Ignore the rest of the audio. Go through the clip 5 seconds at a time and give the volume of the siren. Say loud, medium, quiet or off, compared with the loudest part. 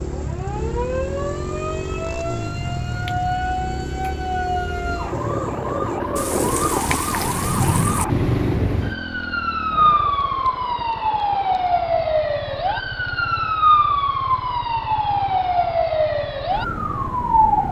medium, loud, loud, loud.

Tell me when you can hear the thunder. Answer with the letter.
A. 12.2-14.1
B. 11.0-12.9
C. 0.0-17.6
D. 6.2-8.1
D.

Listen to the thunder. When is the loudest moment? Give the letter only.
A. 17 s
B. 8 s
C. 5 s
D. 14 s
B.